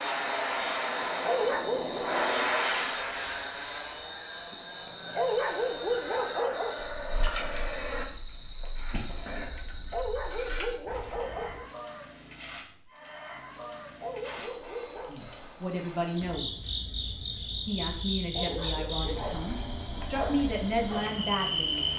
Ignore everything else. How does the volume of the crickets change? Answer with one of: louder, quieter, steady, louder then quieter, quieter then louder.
steady.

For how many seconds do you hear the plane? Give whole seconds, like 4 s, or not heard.
8 s.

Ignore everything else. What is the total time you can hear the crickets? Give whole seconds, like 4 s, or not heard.
22 s.